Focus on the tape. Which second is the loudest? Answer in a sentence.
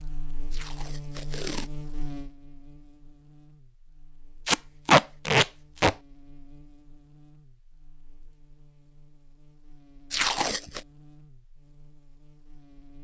The loudest moment of the tape is at 5 seconds.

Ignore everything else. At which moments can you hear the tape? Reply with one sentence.
You can hear the tape from 0.5 to 1.7 s, from 4.5 to 6.0 s and from 10.1 to 10.8 s.